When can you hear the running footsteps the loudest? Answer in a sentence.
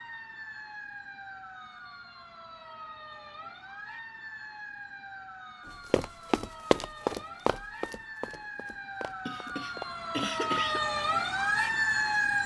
The volume of the running footsteps peaks at 7 seconds.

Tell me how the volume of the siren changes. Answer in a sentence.
The loudness of the siren goes up.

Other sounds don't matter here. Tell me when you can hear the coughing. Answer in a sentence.
The coughing can be heard from 9.2 to 10.8 s.